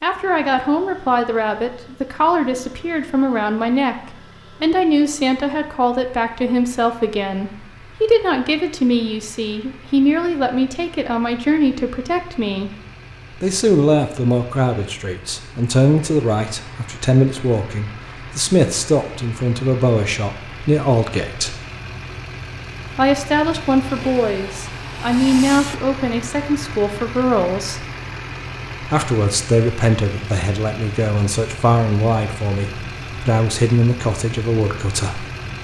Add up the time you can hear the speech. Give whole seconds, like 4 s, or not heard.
32 s.